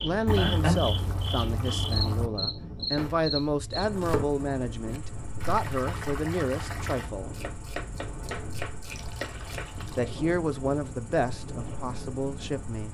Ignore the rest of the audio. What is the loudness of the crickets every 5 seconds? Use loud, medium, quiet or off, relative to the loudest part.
loud, quiet, quiet.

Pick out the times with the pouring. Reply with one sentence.
The pouring can be heard from 0.2 to 2.3 s, from 5.4 to 7.1 s and from 8.8 to 10.1 s.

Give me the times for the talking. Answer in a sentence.
You can hear the talking from 0.0 to 7.3 s and from 9.8 to 12.9 s.